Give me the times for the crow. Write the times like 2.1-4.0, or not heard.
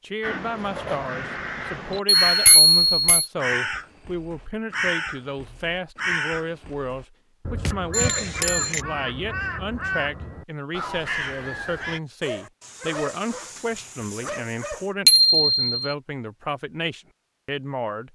0.2-12.0.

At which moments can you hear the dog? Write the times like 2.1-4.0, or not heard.
12.2-14.9.